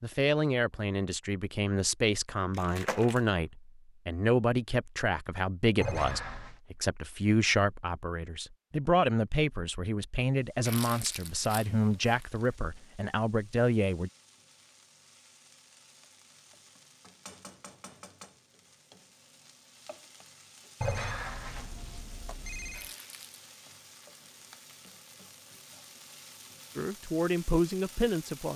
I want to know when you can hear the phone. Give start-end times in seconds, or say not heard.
5.8-6.6, 20.8-22.9.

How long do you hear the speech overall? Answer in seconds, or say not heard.
16 s.